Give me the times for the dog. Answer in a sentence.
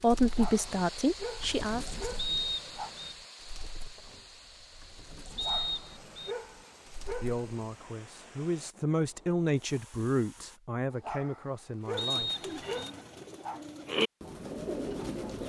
The dog can be heard from 0.2 to 2.9 s, from 5.3 to 7.5 s and from 10.9 to 13.6 s.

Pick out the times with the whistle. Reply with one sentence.
The whistle can be heard from 2.1 to 3.1 s, from 5.3 to 6.3 s and from 11.9 to 12.9 s.